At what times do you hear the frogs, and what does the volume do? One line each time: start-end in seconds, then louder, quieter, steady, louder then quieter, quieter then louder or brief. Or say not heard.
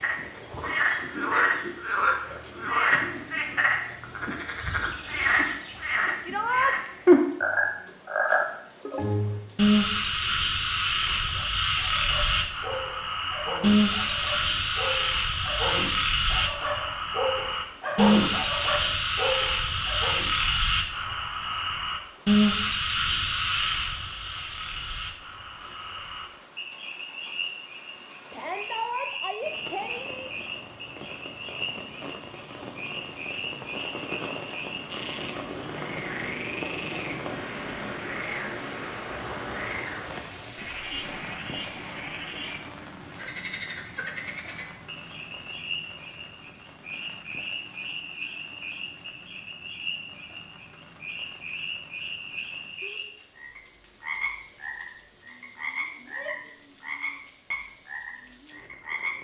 0.0-59.1 quieter.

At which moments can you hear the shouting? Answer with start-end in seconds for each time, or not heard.
6.2-6.8, 28.3-30.3, 56.0-56.5.